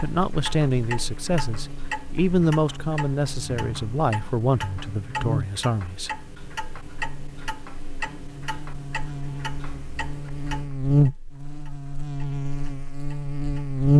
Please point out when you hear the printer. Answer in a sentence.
You can't hear the printer here.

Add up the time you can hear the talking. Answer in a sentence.
You can hear the talking for 6 seconds altogether.